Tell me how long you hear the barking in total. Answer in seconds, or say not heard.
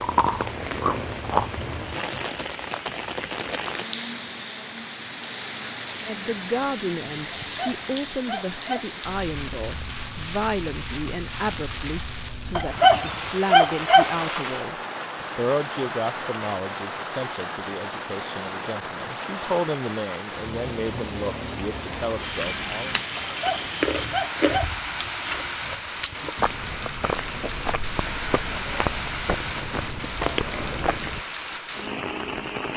5 s.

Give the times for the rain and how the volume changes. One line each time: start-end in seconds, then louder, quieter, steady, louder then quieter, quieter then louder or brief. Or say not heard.
0.0-32.7 steady.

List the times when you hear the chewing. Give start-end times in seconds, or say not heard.
0.0-1.6, 22.3-31.2.